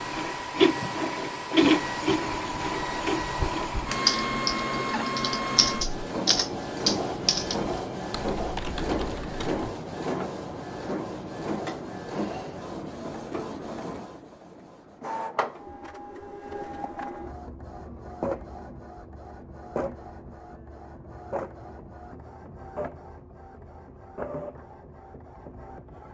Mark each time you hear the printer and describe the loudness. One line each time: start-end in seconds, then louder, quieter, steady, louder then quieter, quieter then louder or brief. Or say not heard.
0.0-26.0 quieter.